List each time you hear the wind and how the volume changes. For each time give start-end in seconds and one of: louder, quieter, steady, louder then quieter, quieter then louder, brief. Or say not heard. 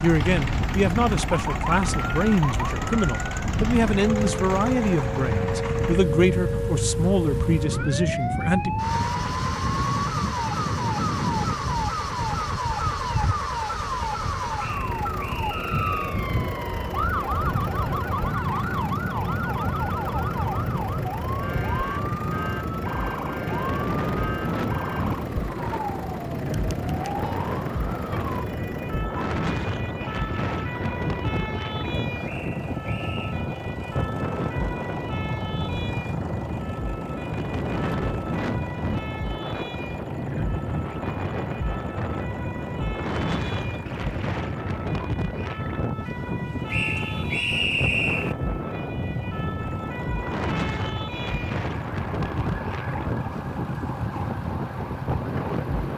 0.0-55.9 steady.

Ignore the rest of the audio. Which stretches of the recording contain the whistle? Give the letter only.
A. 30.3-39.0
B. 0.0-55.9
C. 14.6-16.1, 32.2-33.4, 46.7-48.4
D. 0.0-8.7
C.